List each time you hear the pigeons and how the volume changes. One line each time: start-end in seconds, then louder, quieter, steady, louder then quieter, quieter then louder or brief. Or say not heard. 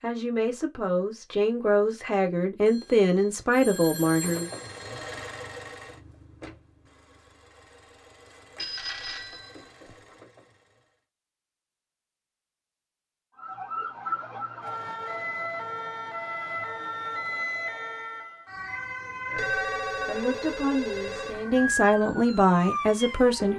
not heard.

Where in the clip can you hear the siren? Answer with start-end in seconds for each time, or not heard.
13.3-23.5.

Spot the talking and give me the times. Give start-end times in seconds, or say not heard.
0.0-4.5, 19.2-23.5.